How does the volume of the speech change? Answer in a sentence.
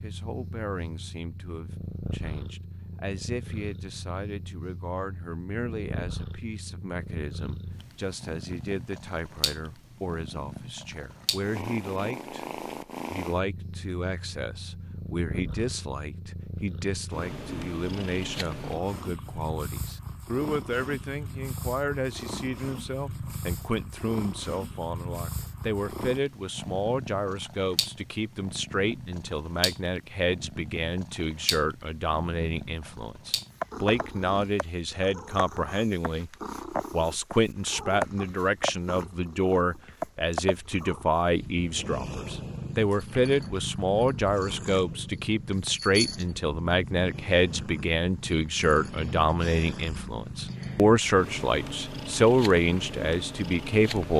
The loudness of the speech goes up.